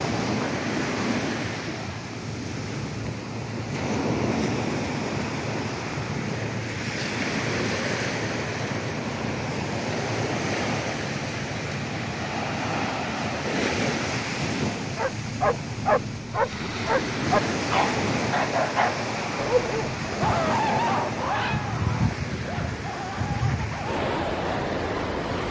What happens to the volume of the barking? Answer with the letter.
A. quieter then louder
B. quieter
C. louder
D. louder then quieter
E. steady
B.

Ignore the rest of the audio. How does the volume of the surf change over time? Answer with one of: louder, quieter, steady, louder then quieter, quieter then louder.
steady.